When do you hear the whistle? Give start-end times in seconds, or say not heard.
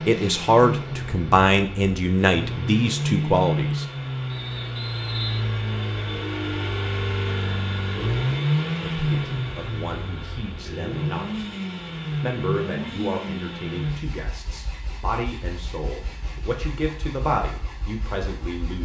4.2-5.5.